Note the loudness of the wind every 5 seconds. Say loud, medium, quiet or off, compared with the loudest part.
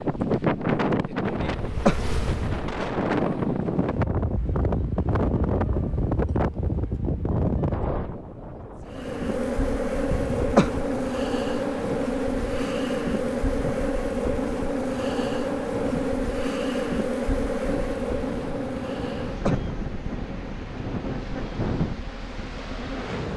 loud, loud, quiet, medium, medium.